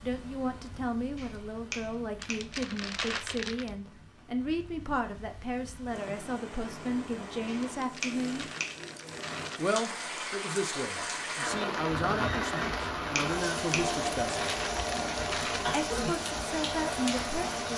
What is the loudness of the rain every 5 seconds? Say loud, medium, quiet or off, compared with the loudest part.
quiet, medium, loud, loud.